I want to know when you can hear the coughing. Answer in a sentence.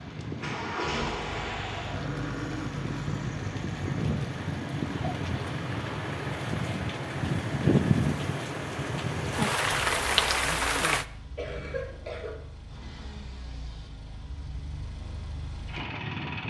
The coughing can be heard from 11.3 to 12.4 s.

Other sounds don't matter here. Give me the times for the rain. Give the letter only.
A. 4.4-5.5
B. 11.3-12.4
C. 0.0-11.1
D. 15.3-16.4
C.